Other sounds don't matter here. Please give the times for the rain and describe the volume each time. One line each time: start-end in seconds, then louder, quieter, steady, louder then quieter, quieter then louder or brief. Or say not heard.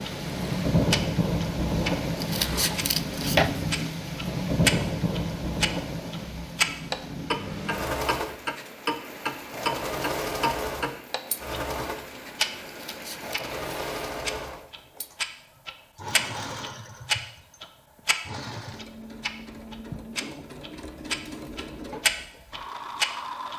0.0-14.1 quieter.